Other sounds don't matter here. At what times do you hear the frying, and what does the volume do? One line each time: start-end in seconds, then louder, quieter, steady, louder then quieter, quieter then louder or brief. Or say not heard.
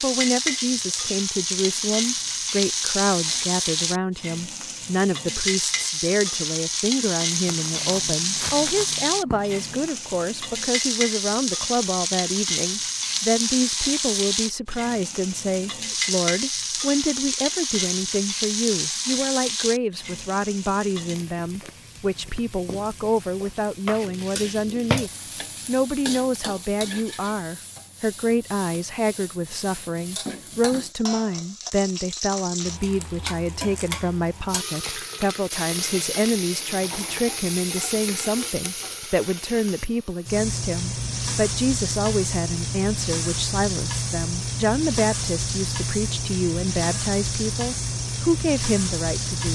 0.0-49.5 quieter then louder.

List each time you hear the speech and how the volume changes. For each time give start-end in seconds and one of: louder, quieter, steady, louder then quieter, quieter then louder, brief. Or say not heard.
0.0-49.5 steady.